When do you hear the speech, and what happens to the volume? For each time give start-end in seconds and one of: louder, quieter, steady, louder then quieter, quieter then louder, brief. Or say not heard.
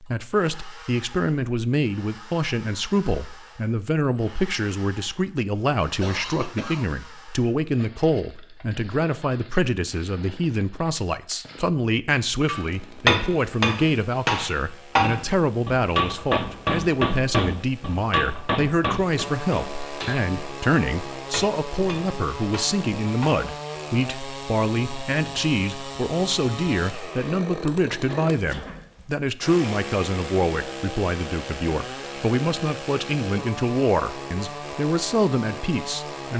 0.0-36.3 steady.